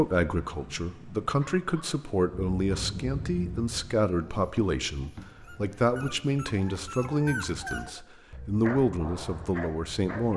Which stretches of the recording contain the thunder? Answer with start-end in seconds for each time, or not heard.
2.4-3.8.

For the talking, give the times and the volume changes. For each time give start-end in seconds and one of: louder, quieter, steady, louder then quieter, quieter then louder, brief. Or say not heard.
0.0-10.3 steady.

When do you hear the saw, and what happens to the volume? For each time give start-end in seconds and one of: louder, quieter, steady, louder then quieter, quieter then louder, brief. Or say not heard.
not heard.